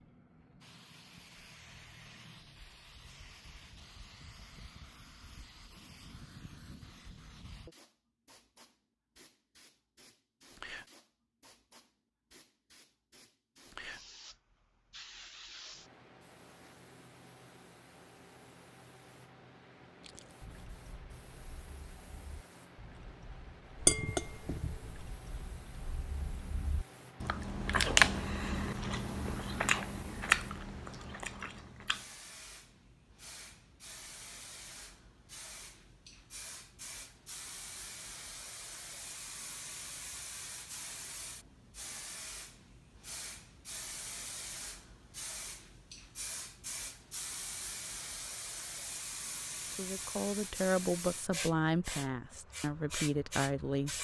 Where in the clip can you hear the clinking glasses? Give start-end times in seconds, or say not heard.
23.8-24.9.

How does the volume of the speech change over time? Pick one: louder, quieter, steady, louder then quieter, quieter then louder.
quieter then louder.